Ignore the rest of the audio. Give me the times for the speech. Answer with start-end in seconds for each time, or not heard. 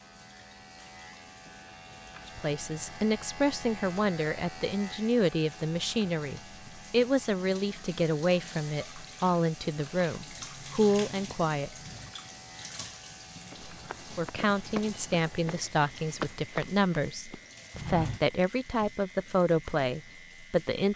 2.2-11.7, 14.2-20.9.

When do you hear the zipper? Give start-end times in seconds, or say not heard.
not heard.